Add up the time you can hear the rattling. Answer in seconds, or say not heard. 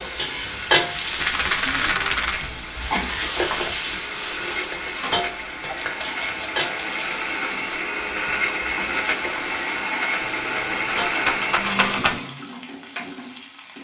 5 s.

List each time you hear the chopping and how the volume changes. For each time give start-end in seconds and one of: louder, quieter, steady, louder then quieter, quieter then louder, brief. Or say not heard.
not heard.